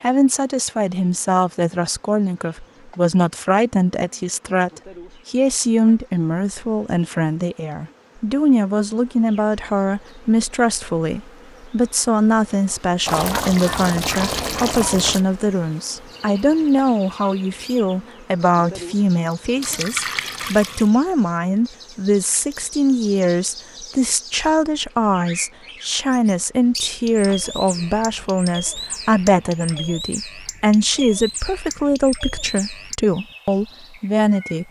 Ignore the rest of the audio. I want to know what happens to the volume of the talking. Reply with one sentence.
The loudness of the talking stays about the same.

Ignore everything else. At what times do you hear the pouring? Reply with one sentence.
The pouring can be heard from 13.1 to 15.2 s and from 19.6 to 20.9 s.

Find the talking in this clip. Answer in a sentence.
The talking can be heard from 0.0 to 34.6 s.